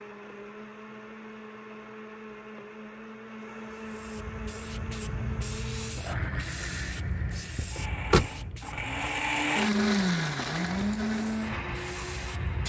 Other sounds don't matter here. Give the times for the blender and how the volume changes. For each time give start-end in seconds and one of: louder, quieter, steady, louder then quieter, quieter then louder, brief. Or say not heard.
0.0-12.6 louder.